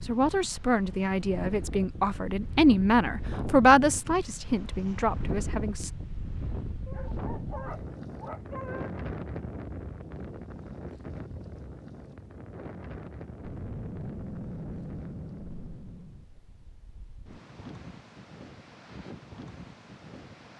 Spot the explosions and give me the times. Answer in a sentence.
You can hear the explosions from 13.4 to 16.2 s.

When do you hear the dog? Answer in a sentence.
You can hear the dog from 6.8 to 8.9 s.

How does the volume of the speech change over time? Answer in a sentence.
The volume of the speech goes up, then down.